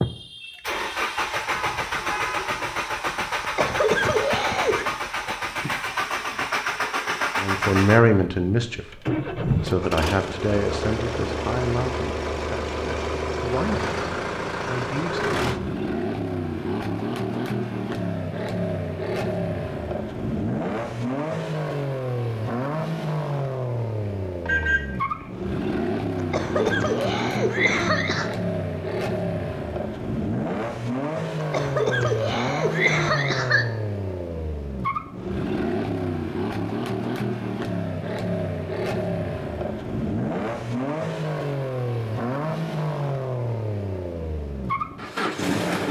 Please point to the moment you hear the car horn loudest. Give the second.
25 s.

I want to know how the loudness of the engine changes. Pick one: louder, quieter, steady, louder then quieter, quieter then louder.
steady.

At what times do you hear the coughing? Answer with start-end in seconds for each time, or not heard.
3.4-4.8, 26.2-28.3, 31.4-33.6.